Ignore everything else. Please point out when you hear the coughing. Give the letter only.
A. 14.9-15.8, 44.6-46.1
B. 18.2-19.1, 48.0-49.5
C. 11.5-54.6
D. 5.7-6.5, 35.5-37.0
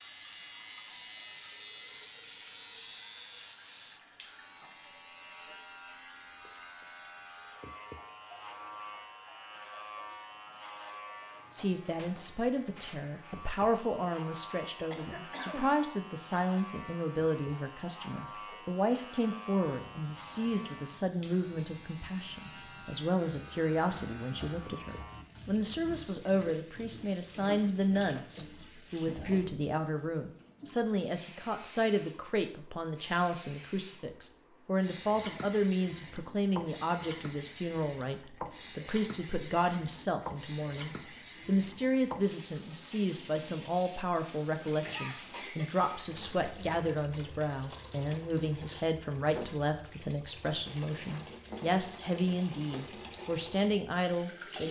A.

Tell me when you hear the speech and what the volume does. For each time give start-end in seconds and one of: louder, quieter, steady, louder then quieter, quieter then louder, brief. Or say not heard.
11.5-54.6 steady.